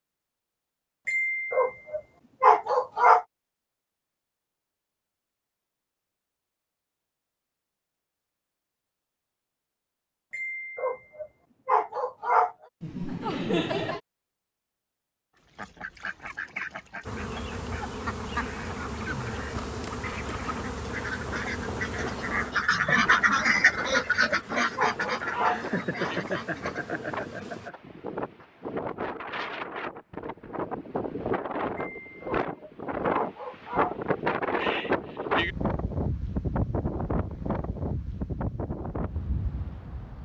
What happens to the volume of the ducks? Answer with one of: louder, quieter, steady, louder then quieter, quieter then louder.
louder then quieter.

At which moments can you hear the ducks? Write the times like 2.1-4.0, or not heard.
15.5-26.9.